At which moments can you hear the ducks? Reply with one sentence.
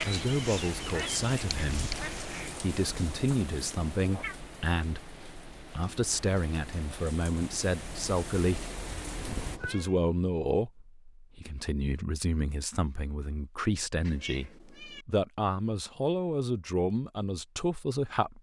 You can hear the ducks from 0.0 to 2.6 s.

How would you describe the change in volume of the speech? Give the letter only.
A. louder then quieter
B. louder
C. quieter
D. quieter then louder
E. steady
E.